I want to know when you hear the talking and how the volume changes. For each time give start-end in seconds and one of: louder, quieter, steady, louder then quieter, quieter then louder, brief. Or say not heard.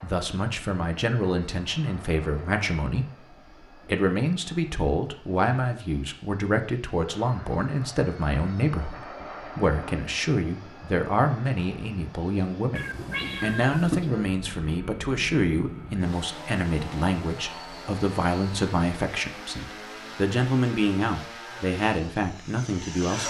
0.0-12.8 steady
13.4-23.2 steady.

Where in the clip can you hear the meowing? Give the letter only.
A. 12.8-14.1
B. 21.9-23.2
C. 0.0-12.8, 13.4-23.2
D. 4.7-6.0
A.